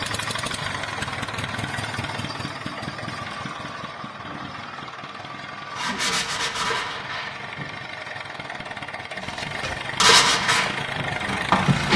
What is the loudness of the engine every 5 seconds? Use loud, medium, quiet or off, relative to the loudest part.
loud, medium, loud.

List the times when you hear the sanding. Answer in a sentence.
The sanding can be heard from 5.8 to 7.7 s and from 9.4 to 11.9 s.